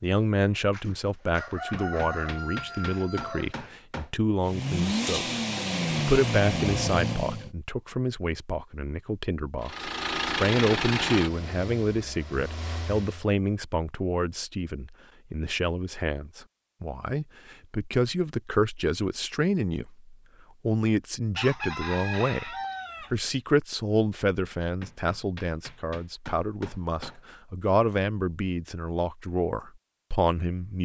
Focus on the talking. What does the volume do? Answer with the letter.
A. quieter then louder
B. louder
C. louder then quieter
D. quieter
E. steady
E.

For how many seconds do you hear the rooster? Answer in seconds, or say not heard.
5 s.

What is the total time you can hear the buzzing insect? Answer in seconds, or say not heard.
not heard.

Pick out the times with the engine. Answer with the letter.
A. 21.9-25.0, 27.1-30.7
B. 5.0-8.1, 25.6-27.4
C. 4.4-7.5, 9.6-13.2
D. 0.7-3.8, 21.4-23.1
C.